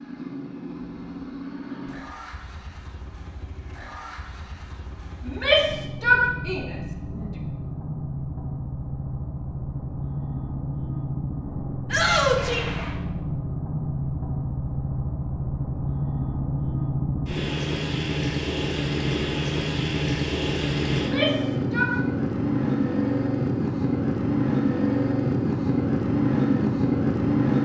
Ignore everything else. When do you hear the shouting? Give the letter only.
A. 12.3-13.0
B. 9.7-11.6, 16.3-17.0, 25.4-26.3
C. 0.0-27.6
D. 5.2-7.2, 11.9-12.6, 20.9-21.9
D.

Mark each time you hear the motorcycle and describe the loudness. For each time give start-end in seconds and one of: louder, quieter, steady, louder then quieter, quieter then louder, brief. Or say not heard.
0.0-27.6 louder.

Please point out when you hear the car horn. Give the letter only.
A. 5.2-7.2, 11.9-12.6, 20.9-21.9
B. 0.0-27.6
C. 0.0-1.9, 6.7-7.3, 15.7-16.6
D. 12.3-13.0
D.